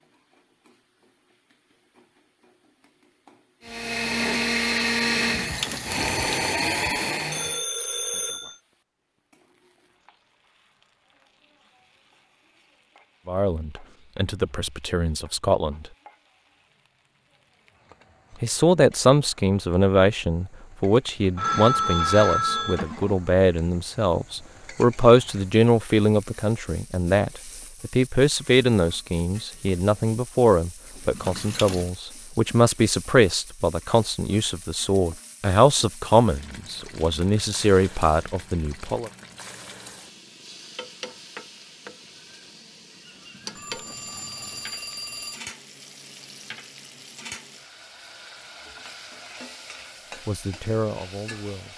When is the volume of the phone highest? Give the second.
22 s.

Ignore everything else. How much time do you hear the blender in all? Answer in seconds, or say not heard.
4 s.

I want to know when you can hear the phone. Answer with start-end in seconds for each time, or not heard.
7.3-8.6, 21.4-23.1, 43.5-45.4.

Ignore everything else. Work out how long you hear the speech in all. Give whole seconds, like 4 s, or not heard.
25 s.